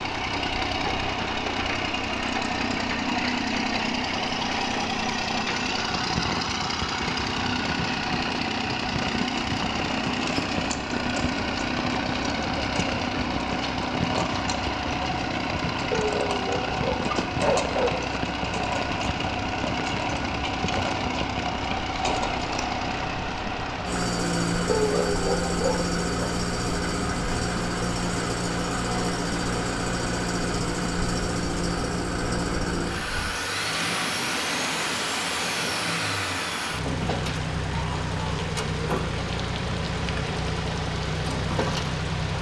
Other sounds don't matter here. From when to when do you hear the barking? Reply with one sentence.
You can hear the barking from 15.9 to 17.9 s and from 24.6 to 26.3 s.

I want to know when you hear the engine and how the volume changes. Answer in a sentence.
You can hear the engine from 0.0 to 42.3 s, at a steady volume.